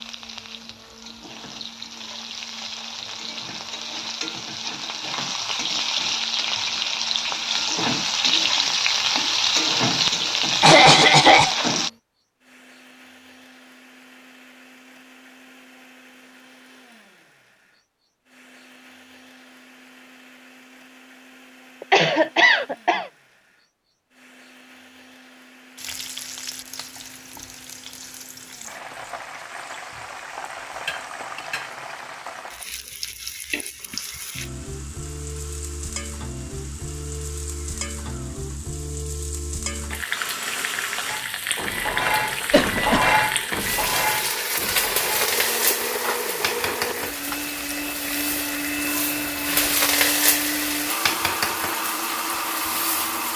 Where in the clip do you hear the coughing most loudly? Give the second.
11 s.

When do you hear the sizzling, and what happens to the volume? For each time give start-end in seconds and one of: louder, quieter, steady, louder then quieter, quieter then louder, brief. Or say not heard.
0.0-11.9 louder
25.8-53.3 louder.